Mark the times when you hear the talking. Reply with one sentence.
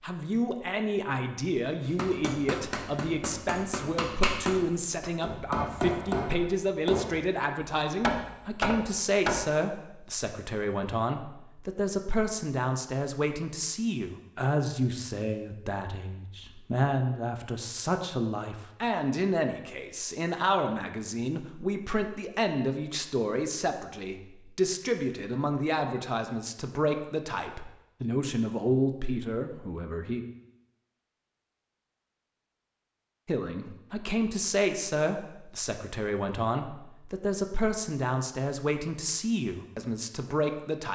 You can hear the talking from 0.0 to 30.2 s and from 33.2 to 40.9 s.